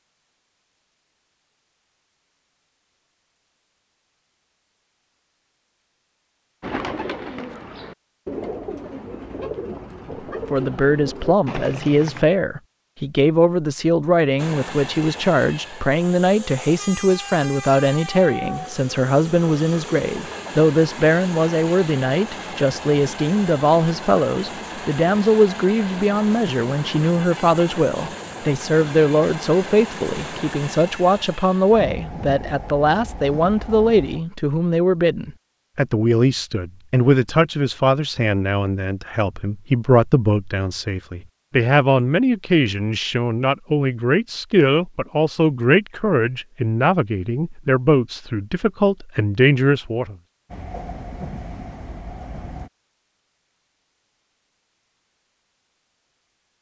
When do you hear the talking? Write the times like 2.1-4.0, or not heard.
10.1-50.1.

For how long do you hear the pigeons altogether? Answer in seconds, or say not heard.
6 s.